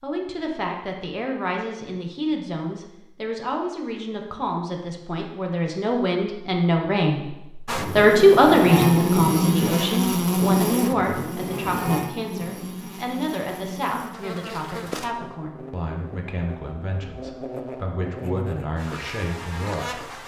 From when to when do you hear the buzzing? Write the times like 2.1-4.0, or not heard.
7.7-20.2.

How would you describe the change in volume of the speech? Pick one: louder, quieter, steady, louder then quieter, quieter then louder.
louder then quieter.